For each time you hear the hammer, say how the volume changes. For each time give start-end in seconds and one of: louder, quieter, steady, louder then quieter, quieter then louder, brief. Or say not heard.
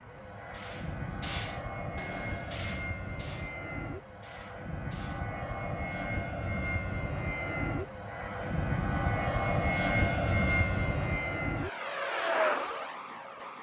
0.1-5.3 quieter.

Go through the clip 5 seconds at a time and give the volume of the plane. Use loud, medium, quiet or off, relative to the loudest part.
medium, loud, loud.